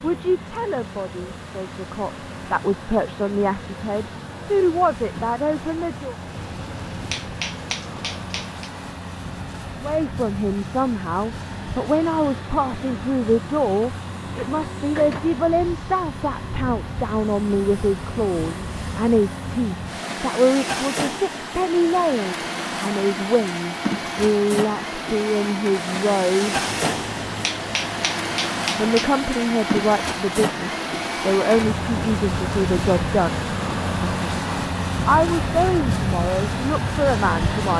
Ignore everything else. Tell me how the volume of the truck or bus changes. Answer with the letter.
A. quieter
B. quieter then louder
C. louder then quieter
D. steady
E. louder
E.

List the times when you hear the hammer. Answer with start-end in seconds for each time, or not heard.
6.3-8.7, 26.6-29.1.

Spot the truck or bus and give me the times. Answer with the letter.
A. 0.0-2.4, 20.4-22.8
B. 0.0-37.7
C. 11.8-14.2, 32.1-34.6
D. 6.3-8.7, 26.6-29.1
B.